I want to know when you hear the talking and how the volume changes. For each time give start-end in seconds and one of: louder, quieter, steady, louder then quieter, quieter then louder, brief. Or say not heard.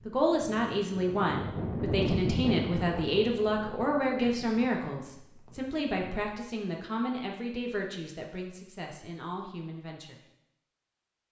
0.1-10.2 quieter.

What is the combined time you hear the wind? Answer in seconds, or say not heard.
6 s.